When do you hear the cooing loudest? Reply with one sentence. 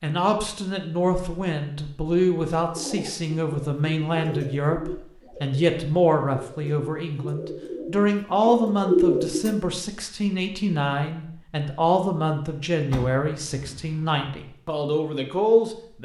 The loudest moment of the cooing is at 9 seconds.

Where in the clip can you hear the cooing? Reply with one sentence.
You can hear the cooing from 2.6 to 9.6 s.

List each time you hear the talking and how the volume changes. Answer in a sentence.
The talking can be heard from 0.0 to 16.0 s, at a steady volume.